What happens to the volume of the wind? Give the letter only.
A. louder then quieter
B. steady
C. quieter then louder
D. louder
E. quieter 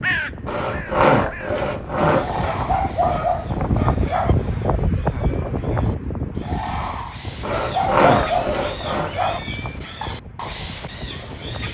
A.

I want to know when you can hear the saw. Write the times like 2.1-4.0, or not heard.
0.5-2.5, 7.4-9.2.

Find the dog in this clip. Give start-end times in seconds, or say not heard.
2.4-4.3, 7.5-9.4.